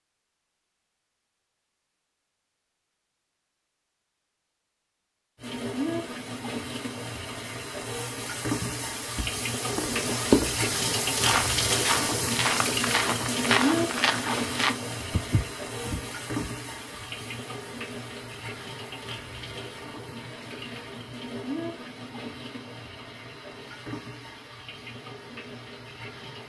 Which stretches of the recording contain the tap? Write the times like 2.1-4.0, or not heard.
5.3-26.4.